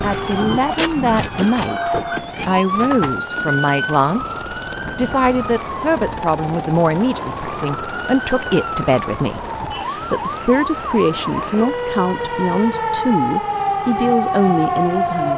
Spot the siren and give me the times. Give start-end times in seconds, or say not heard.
0.0-15.3.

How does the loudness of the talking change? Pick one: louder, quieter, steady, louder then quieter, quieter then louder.
steady.